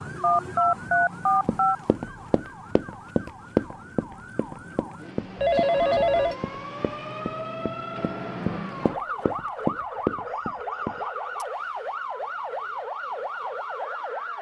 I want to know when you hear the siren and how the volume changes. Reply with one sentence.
You can hear the siren from 0.0 to 14.3 s, getting louder.